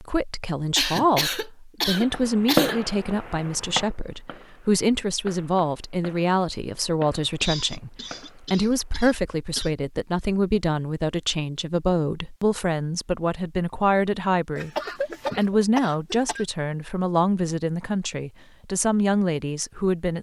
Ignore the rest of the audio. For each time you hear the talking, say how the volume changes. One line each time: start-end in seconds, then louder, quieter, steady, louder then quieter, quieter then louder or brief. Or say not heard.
0.0-14.7 steady
15.3-20.1 steady.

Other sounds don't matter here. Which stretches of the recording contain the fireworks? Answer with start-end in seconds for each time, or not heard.
1.9-8.9.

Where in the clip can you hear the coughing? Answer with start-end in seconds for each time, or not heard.
0.8-2.8, 7.4-9.7, 14.6-16.4.